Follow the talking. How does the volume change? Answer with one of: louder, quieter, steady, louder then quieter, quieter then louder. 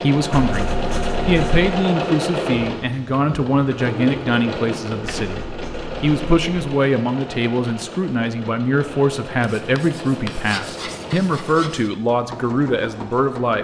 steady.